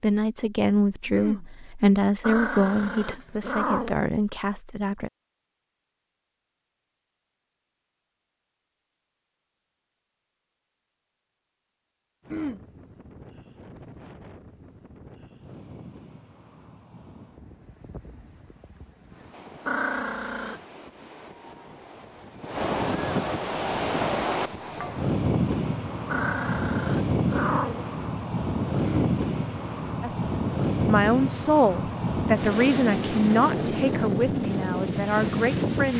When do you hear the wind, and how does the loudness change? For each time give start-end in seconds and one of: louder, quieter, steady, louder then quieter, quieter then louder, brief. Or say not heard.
12.2-35.9 louder.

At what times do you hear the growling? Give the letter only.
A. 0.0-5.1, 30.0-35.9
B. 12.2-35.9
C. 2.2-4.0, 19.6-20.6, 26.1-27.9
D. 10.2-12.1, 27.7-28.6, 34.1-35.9
C.